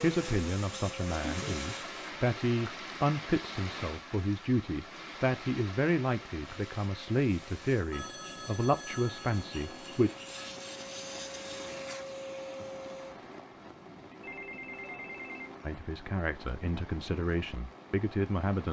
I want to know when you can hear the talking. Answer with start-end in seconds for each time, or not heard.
0.0-10.1, 15.7-18.6.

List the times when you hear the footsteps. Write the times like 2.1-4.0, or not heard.
not heard.